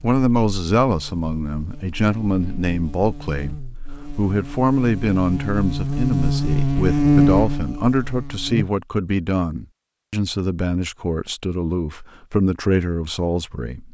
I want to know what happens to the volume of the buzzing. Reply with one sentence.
The volume of the buzzing goes up.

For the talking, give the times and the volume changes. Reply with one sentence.
You can hear the talking from 0.0 to 13.8 s, at a steady volume.